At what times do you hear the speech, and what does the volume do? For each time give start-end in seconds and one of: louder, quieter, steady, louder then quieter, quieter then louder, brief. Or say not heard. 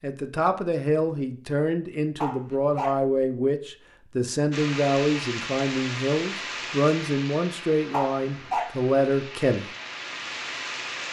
0.0-9.7 steady.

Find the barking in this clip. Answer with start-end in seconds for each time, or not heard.
2.1-3.0, 7.9-8.8.